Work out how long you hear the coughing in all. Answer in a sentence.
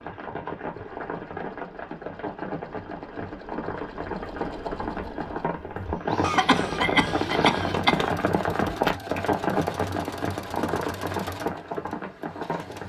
The coughing can be heard for 2 seconds in total.